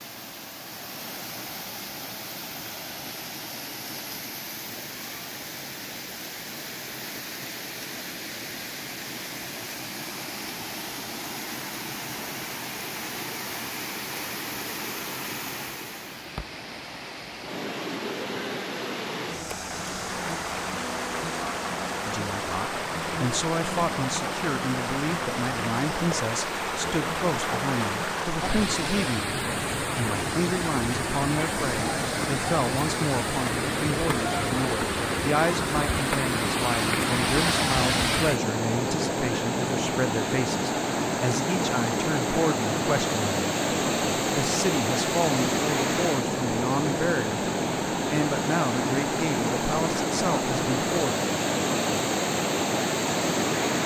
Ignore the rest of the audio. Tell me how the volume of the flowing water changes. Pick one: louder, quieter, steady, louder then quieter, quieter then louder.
louder.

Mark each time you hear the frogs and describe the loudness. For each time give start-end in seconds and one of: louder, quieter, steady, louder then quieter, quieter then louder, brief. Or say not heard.
not heard.